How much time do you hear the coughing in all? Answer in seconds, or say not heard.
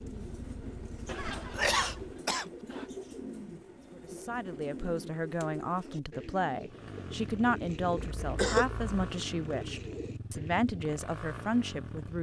3 s.